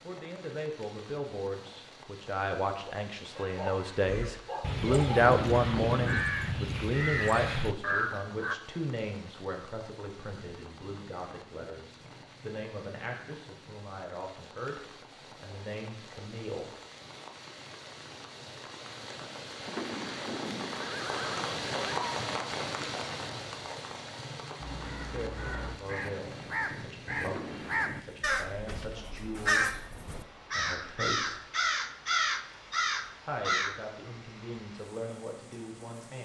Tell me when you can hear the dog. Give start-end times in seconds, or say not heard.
3.3-5.2.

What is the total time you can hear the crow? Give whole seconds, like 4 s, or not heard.
14 s.